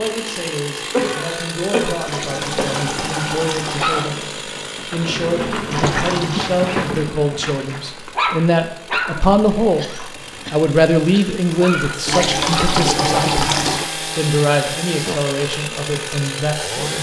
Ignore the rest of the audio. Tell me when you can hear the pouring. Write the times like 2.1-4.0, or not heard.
2.0-4.0, 5.7-6.5, 12.1-13.9.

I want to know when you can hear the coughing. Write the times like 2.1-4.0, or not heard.
0.9-2.8, 9.8-11.3.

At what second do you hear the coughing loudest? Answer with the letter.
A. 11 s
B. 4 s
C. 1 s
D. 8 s
C.